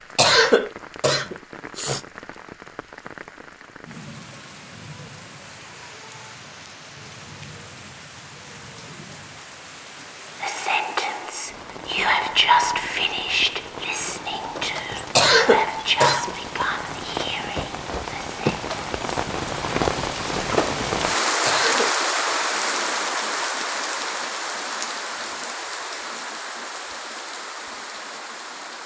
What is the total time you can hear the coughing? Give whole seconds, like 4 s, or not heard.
4 s.